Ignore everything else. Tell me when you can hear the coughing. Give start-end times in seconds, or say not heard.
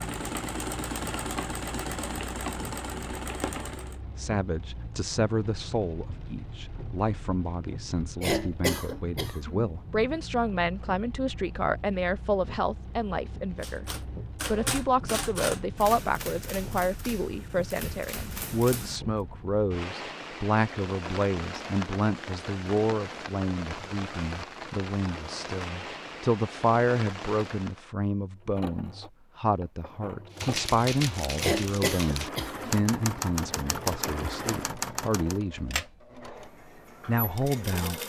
8.2-9.7, 31.4-32.8.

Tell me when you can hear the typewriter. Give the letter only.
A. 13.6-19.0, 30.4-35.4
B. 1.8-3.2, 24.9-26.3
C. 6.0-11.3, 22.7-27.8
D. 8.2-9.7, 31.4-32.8
A.